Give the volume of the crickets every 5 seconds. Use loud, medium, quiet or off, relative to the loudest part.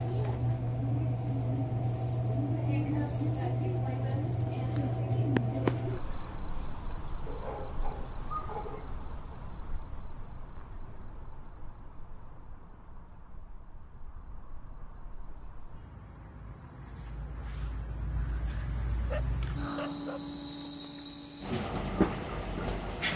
loud, loud, quiet, medium, loud.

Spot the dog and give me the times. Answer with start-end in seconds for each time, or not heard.
7.2-9.4, 18.9-20.4.